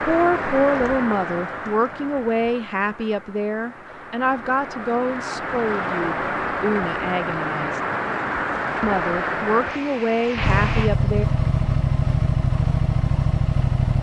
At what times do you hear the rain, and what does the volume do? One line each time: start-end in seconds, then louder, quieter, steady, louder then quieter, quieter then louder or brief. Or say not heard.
0.0-10.9 quieter then louder.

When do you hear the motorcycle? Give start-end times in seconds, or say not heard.
10.4-13.9.